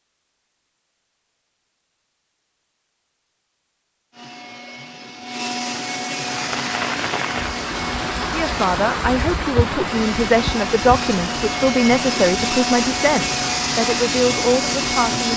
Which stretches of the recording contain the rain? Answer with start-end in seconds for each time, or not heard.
6.1-15.3.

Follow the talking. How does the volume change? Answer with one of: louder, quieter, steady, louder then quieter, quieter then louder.
steady.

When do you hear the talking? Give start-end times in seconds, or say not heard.
8.3-15.3.